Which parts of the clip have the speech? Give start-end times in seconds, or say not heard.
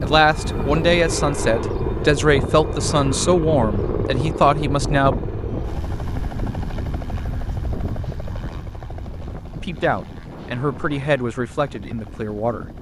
0.0-5.2, 9.6-12.7.